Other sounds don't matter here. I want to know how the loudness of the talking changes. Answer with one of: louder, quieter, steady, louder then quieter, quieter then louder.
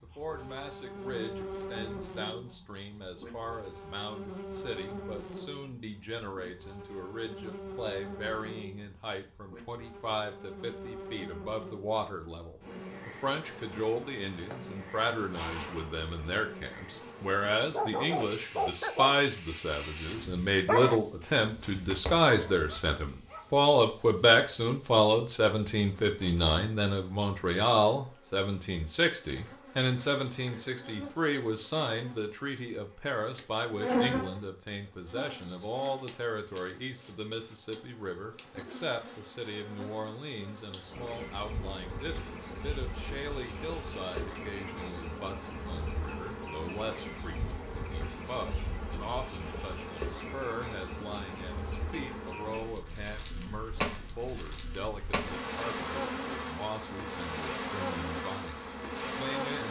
louder then quieter.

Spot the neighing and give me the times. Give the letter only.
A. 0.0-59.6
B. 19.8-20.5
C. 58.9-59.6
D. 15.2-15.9
D.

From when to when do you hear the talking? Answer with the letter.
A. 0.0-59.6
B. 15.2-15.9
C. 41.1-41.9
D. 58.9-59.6
A.